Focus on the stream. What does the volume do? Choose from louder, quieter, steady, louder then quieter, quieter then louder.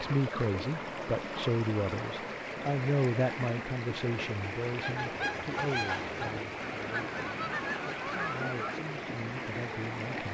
steady.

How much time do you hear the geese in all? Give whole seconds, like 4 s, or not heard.
4 s.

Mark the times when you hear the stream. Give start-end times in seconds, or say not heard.
0.0-10.2.